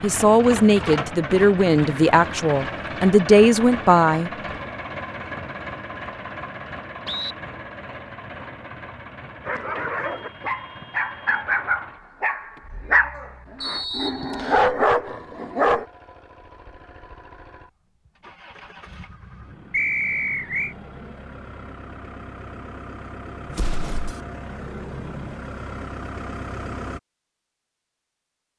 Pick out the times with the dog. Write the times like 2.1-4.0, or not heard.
9.4-15.8.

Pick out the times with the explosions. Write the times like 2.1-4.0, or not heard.
23.4-24.2.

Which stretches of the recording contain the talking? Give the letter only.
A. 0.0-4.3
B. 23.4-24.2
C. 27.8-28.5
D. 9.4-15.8
A.